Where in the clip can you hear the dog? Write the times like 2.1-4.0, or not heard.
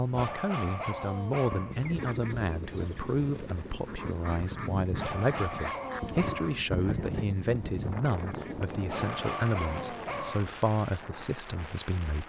0.1-1.8, 5.0-6.6, 8.8-10.5.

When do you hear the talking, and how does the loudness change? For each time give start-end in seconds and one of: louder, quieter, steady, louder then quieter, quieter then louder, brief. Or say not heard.
0.0-12.2 steady.